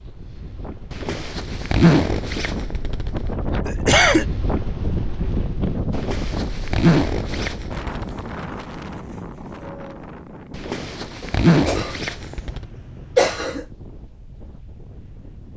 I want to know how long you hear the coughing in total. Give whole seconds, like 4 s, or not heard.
3 s.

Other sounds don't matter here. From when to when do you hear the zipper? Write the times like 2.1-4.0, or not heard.
0.9-3.3, 5.9-8.3, 10.5-12.7.